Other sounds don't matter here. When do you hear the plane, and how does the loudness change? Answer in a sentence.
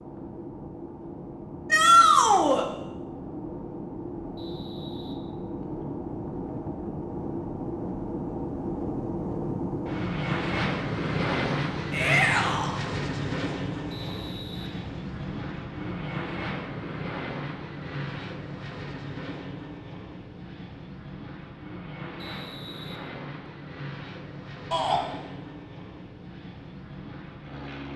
You can hear the plane from 0.0 to 27.9 s, getting louder then quieter.